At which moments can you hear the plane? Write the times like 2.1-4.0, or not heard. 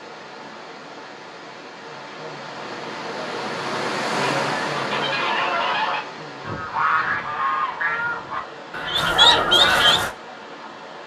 not heard.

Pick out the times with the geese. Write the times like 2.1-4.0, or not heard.
4.3-10.1.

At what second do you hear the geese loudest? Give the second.
9 s.